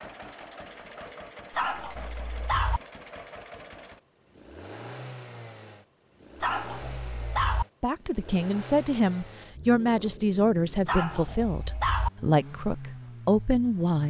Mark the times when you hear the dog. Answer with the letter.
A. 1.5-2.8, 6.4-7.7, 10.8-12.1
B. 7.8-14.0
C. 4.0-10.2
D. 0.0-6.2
A.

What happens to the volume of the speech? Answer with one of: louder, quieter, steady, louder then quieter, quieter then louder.
steady.